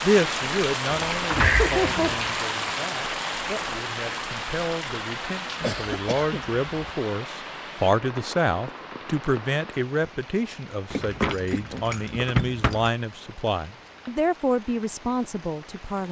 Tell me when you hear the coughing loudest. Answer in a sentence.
The loudest moment of the coughing is at 2 seconds.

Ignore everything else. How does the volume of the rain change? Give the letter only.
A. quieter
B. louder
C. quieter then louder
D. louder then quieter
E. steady
A.